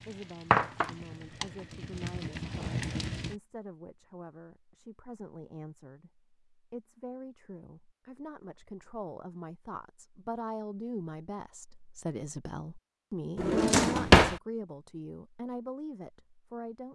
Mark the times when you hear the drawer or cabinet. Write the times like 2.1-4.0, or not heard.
13.3-14.3.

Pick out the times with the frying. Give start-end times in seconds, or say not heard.
0.0-3.4.